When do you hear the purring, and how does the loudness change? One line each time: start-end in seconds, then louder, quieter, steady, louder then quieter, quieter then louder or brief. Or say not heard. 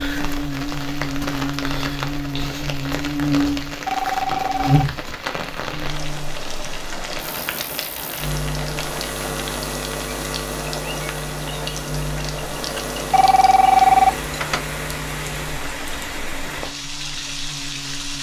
not heard.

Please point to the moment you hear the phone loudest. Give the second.
14 s.